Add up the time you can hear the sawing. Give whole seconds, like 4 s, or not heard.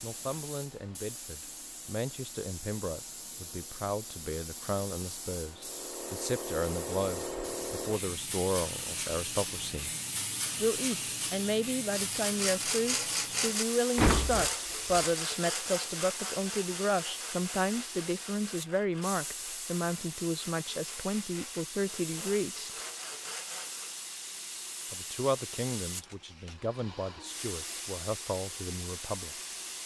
12 s.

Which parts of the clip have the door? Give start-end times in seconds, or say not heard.
13.9-15.0.